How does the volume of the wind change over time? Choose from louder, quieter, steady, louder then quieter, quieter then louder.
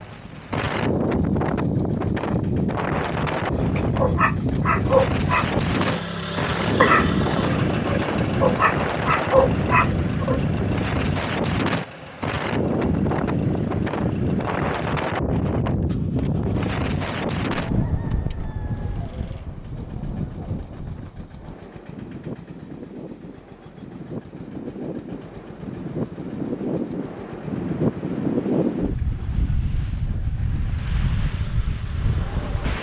quieter then louder.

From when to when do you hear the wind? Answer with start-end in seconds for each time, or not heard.
0.0-32.7.